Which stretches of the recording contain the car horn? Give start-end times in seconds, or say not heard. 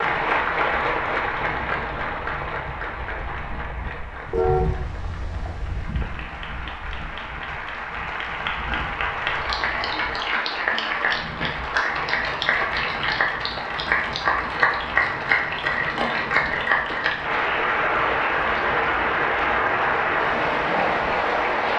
4.3-5.8.